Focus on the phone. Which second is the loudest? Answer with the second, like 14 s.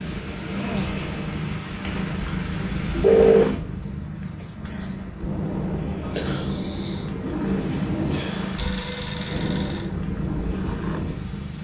3 s.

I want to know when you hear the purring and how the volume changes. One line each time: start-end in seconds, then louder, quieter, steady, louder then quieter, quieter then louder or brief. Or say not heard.
0.0-11.5 steady.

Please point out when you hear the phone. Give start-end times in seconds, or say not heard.
3.0-3.6, 8.6-9.9.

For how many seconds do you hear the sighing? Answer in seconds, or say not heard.
2 s.